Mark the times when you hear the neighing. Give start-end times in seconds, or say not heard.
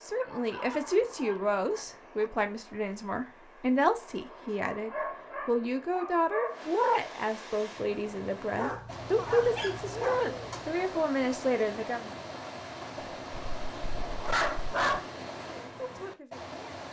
not heard.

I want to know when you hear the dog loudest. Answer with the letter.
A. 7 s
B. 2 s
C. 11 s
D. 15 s
D.